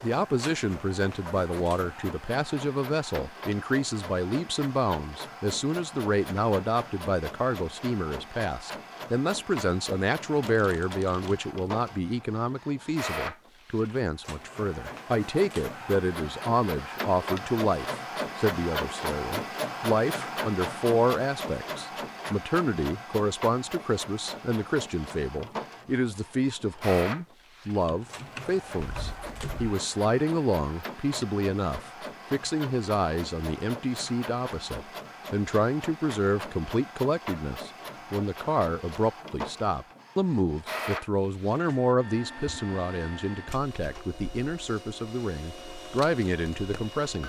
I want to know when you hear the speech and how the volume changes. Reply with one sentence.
You can hear the speech from 0.0 to 47.2 s, at a steady volume.